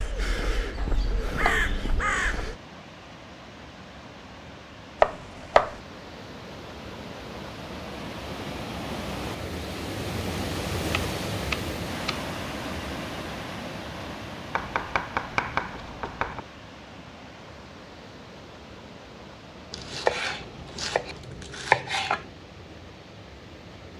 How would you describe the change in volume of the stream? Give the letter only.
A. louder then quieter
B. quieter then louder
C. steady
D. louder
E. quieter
A.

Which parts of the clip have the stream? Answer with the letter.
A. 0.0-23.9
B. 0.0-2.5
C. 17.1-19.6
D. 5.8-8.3
A.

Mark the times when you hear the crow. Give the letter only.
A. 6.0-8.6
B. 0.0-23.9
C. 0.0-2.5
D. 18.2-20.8
C.